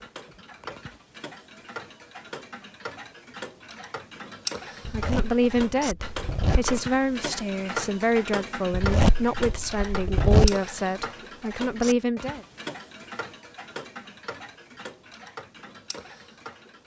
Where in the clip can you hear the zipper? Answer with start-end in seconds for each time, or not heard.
4.8-6.8, 8.7-10.6.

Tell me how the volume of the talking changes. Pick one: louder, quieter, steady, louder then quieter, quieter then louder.
steady.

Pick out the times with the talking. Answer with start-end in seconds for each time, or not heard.
4.9-12.4.